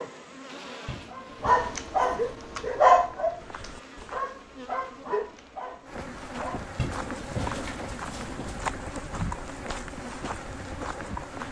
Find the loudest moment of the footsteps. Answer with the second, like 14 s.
9 s.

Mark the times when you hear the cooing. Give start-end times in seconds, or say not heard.
0.8-2.6, 6.8-8.6.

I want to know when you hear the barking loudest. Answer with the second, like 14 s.
3 s.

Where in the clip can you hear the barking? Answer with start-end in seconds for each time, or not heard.
1.1-6.7.